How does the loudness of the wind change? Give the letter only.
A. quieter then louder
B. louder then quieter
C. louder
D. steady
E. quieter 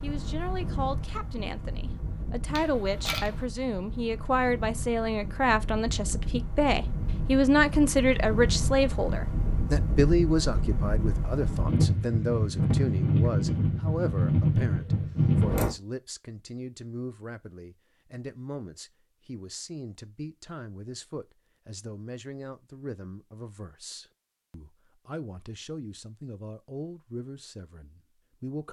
C.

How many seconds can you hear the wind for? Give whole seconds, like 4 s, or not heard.
16 s.